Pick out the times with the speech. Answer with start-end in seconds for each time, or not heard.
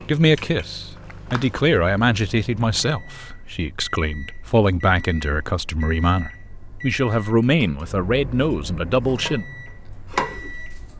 0.1-9.4.